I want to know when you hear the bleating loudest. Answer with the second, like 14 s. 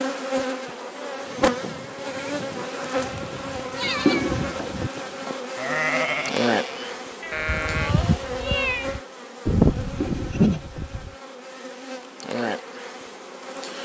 10 s.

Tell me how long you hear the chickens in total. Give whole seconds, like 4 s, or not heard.
not heard.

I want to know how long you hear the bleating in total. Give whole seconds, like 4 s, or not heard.
10 s.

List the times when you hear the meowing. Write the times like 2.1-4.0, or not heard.
3.0-4.9, 7.2-8.9.